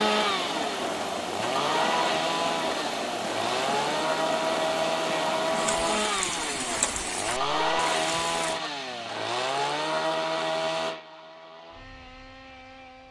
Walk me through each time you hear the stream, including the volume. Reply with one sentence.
You can hear the stream from 0.0 to 8.6 s, at a steady volume.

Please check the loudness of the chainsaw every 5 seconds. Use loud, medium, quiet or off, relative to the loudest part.
loud, loud, medium.